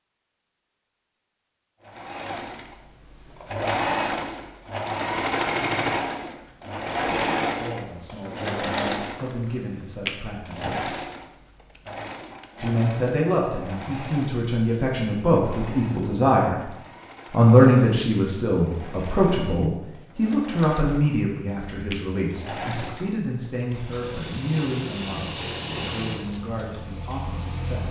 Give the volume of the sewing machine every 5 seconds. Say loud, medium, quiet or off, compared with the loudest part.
loud, loud, medium, quiet, medium, medium.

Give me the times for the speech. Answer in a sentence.
You can hear the speech from 7.6 to 10.9 s, from 12.6 to 16.7 s and from 17.3 to 27.8 s.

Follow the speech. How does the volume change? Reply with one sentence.
The volume of the speech goes up, then down.